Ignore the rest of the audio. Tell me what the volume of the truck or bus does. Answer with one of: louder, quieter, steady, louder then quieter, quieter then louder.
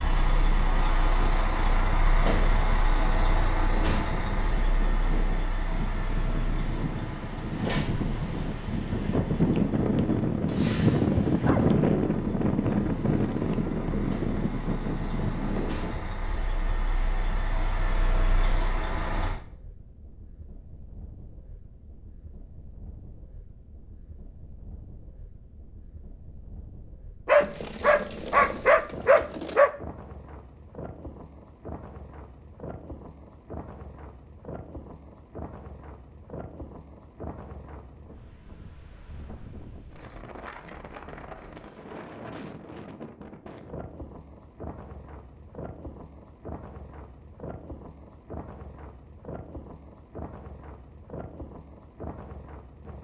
quieter then louder.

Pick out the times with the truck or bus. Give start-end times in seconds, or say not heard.
0.0-19.4.